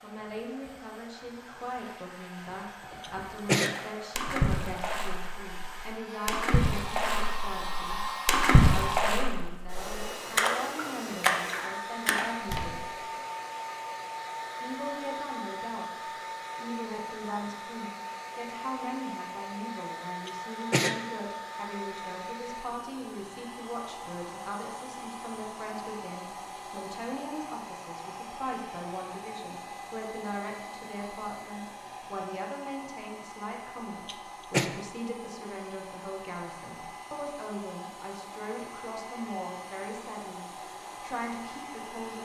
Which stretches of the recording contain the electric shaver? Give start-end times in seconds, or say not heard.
not heard.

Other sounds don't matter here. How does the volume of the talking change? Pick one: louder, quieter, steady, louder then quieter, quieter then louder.
steady.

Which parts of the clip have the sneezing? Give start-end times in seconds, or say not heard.
3.0-3.8, 20.2-21.0, 34.0-34.7.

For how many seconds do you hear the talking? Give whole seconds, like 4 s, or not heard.
40 s.